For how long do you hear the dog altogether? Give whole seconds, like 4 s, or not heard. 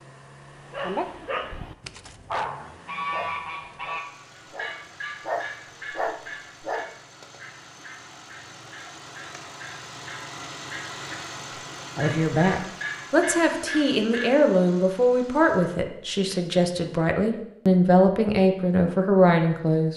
6 s.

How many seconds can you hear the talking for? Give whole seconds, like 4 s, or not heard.
8 s.